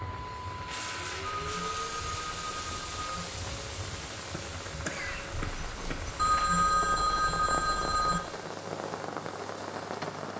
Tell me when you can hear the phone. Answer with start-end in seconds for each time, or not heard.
1.4-3.2, 6.2-8.2.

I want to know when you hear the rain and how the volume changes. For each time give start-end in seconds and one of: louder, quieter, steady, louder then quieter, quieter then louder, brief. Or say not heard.
0.0-10.3 louder.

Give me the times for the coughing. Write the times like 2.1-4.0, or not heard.
4.3-6.2.